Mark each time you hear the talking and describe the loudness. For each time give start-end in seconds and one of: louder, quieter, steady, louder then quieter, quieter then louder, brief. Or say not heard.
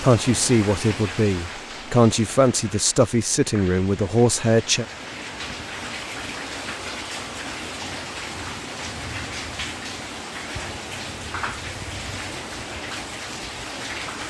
0.0-4.8 steady.